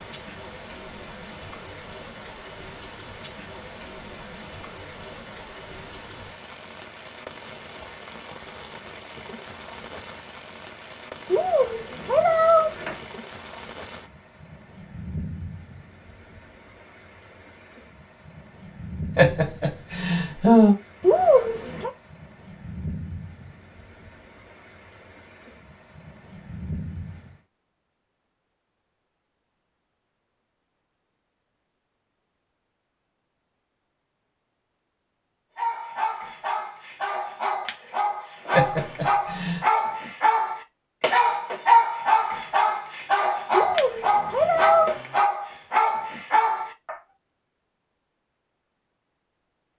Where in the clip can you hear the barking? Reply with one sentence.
The barking can be heard from 35.5 to 47.0 s.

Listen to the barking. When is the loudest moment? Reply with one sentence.
The loudest moment of the barking is at 42 seconds.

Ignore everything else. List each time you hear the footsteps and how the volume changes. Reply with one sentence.
You can't hear the footsteps here.